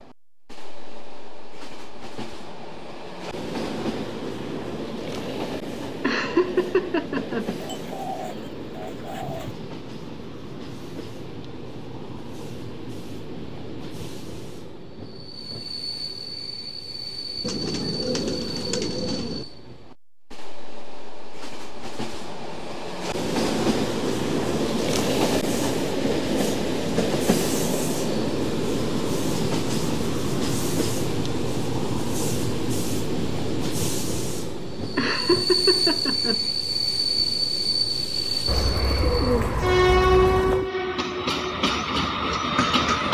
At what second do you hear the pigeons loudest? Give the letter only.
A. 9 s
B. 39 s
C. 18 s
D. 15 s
B.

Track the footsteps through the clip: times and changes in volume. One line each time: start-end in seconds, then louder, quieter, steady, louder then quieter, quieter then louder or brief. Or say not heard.
not heard.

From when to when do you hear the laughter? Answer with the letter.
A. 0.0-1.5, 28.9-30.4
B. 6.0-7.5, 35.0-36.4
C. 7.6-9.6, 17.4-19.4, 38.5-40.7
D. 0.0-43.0
B.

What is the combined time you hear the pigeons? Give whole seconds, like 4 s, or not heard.
6 s.